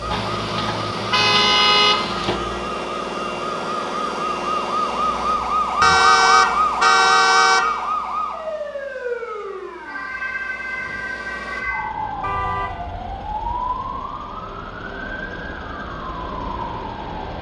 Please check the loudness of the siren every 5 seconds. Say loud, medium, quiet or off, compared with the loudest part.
medium, loud, medium, medium.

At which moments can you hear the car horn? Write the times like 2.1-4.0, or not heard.
0.1-2.4, 5.8-7.7, 12.2-13.6.